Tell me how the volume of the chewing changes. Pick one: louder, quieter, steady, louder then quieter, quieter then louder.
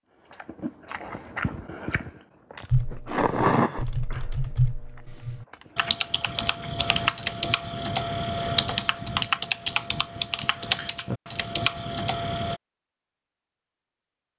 louder then quieter.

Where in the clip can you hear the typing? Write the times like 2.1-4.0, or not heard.
2.7-12.6.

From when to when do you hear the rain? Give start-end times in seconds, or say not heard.
not heard.